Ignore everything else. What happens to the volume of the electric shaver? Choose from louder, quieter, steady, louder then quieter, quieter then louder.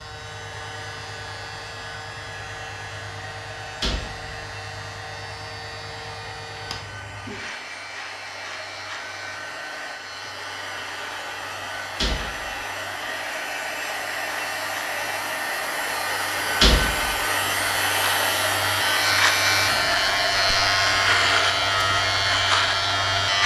louder.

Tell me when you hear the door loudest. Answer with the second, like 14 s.
17 s.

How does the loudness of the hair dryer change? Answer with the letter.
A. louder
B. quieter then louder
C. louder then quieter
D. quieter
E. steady
A.